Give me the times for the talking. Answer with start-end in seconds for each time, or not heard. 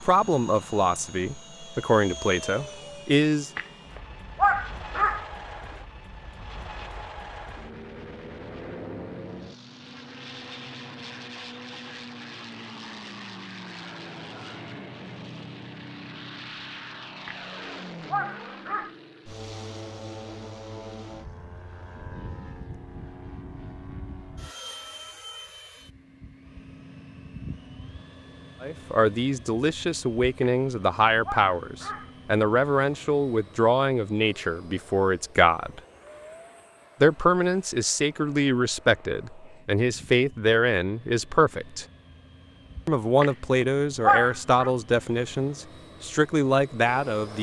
0.0-3.5, 28.6-35.8, 37.0-41.9, 42.9-47.3.